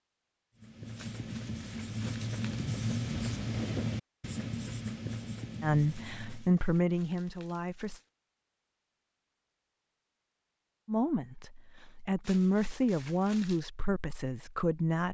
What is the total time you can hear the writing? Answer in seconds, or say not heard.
6 s.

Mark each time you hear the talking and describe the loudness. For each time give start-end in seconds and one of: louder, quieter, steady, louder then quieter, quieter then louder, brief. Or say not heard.
5.6-8.0 brief
10.8-15.0 louder then quieter.